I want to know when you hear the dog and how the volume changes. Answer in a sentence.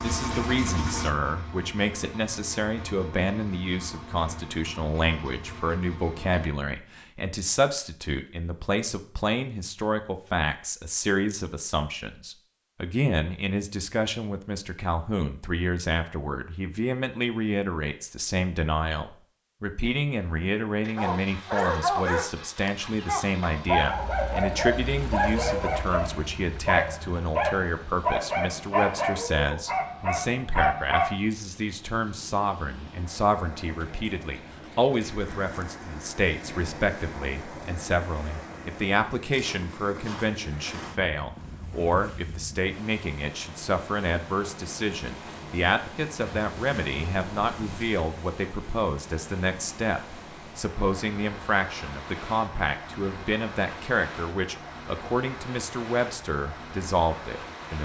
The dog can be heard from 20.9 to 31.2 s, at a steady volume.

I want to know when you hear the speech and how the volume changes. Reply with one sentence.
You can hear the speech from 0.0 to 57.7 s, at a steady volume.